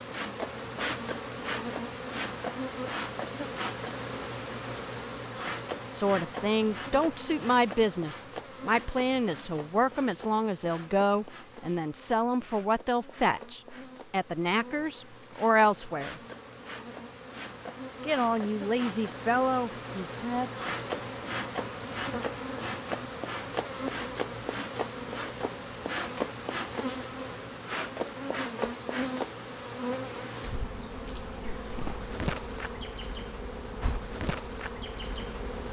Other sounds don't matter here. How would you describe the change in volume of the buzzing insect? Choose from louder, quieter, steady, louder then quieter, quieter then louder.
quieter then louder.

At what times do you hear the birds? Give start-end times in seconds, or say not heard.
not heard.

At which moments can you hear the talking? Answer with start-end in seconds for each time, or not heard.
6.0-16.1, 18.0-20.5.